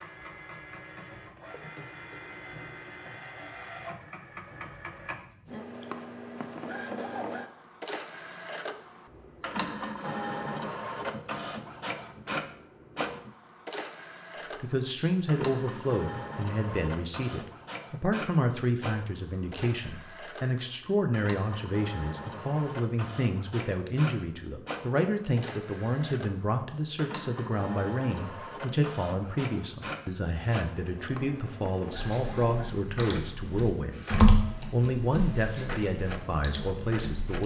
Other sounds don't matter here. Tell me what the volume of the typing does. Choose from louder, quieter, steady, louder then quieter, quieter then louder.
louder then quieter.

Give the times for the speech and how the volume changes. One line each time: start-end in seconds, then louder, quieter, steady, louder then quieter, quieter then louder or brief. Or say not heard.
14.6-37.4 steady.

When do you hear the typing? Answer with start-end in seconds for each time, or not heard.
31.9-37.4.